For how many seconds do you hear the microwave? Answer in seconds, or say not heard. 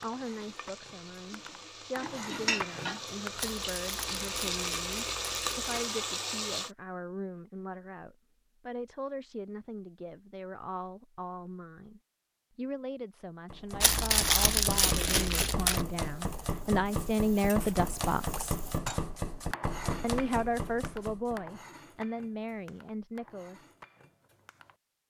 not heard.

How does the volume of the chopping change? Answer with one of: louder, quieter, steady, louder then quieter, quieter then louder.
steady.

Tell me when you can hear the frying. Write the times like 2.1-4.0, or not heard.
0.0-6.7.